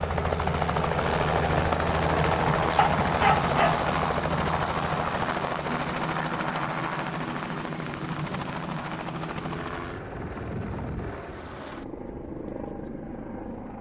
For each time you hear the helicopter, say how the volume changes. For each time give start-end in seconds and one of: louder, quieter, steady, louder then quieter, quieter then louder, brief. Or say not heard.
0.0-13.7 quieter.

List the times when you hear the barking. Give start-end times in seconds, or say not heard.
2.8-3.9.